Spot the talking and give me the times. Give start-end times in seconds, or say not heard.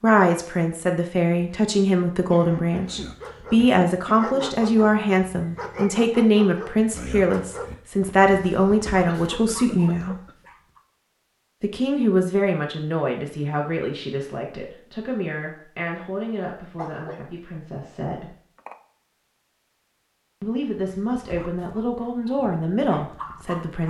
0.0-10.2, 11.6-18.4, 20.4-23.8.